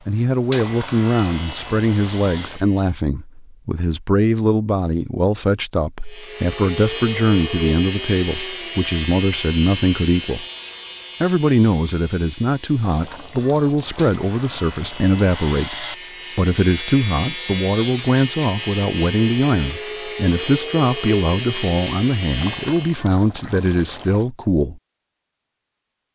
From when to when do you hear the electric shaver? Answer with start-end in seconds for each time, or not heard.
0.0-3.0, 6.0-23.1.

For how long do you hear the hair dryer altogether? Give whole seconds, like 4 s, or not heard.
not heard.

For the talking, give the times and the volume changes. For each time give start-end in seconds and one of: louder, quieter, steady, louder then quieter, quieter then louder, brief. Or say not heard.
0.1-10.4 steady
11.2-24.8 steady.